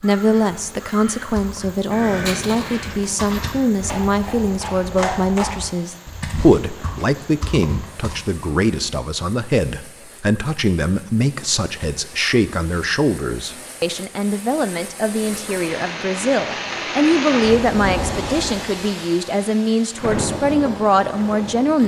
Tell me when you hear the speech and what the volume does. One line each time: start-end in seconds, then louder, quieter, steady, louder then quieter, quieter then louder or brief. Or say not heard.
0.0-21.8 steady.